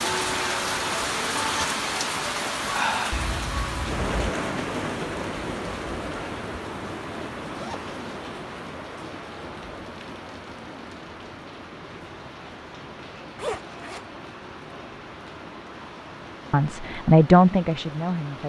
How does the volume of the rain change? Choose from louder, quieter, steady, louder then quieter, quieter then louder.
quieter.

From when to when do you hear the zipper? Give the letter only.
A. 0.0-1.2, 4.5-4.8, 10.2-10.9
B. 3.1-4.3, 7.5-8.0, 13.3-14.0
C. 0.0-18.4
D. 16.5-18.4
B.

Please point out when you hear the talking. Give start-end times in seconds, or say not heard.
16.5-18.4.